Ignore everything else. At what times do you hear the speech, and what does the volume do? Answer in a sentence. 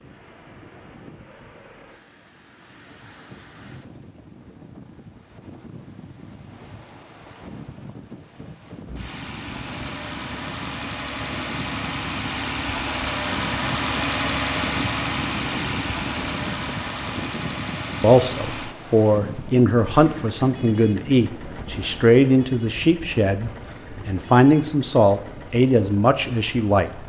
The speech can be heard from 18.0 to 27.0 s, at a steady volume.